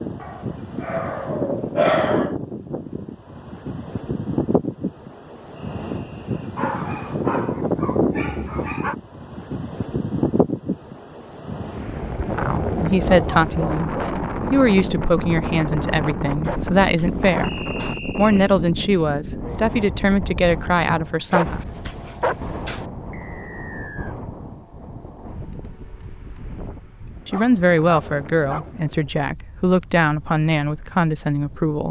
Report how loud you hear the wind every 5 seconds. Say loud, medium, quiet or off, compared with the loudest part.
loud, loud, loud, loud, medium, quiet, quiet.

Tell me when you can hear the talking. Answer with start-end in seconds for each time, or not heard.
12.2-13.9, 14.5-21.6, 27.2-31.8.